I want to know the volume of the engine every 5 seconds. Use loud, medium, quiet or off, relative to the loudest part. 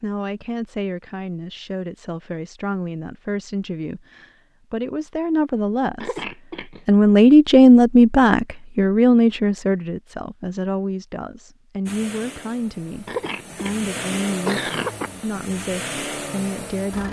off, off, loud, loud.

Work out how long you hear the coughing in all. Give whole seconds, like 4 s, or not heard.
3 s.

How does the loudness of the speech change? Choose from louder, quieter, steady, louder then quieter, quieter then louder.
louder then quieter.